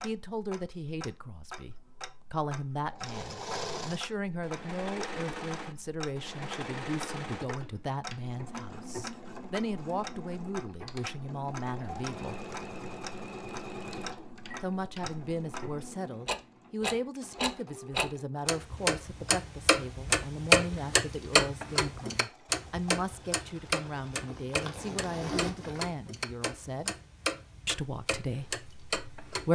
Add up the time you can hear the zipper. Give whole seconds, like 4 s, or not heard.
2 s.